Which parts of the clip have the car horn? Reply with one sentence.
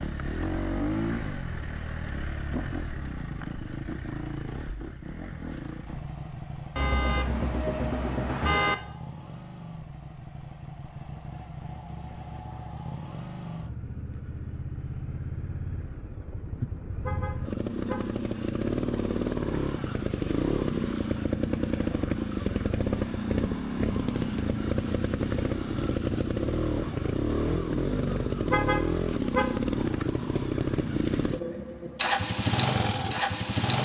You can hear the car horn from 6.8 to 8.8 s, from 17.0 to 18.1 s and from 28.5 to 29.6 s.